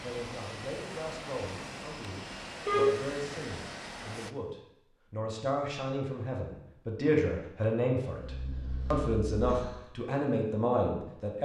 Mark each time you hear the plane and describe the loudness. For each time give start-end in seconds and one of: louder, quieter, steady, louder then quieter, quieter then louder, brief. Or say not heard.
0.0-4.3 steady.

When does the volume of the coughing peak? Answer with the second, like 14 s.
3 s.